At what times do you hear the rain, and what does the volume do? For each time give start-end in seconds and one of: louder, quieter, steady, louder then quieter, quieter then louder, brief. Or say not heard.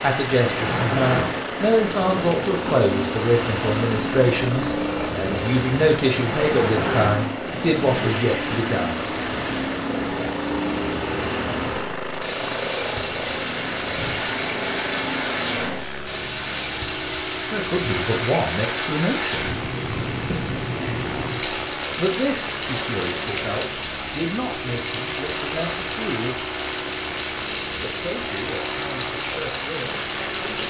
0.0-30.6 steady.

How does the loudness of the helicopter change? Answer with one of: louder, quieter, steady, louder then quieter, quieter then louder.
steady.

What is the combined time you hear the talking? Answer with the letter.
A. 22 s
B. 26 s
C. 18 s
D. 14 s
C.